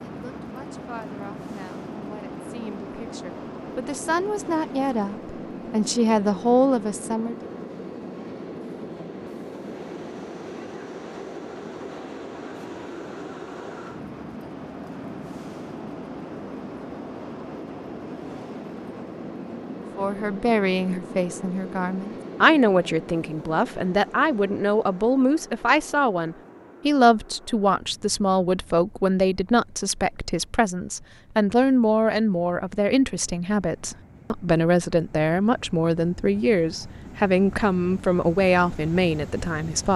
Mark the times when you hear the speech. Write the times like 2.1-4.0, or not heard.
0.1-7.3, 19.9-39.9.